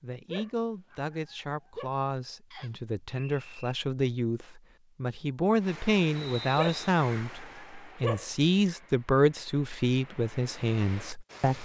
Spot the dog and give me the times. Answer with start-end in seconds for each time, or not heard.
0.2-1.9, 6.5-8.2.